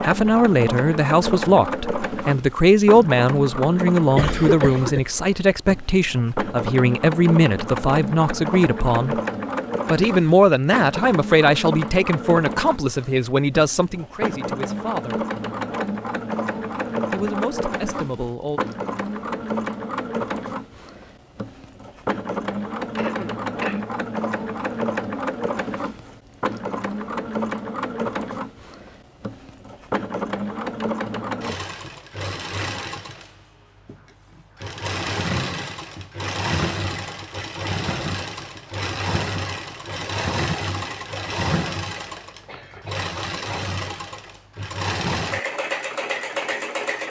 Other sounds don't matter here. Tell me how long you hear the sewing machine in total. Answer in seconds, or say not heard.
47 s.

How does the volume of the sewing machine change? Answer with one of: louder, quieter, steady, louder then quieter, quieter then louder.
steady.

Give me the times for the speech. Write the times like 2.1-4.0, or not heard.
0.0-9.2, 9.9-15.2, 17.1-18.6.